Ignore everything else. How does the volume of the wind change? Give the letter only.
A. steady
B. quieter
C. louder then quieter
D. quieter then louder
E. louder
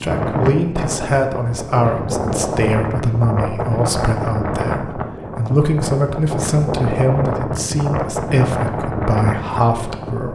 A.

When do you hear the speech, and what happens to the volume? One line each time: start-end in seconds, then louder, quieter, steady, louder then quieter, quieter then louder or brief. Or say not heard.
0.0-10.3 steady.